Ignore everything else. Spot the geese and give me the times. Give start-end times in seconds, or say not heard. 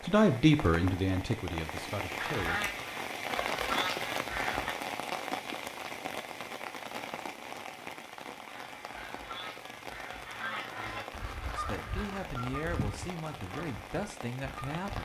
2.1-4.8, 8.4-15.0.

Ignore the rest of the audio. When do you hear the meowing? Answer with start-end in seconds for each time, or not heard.
not heard.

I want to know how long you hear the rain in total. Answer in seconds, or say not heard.
15 s.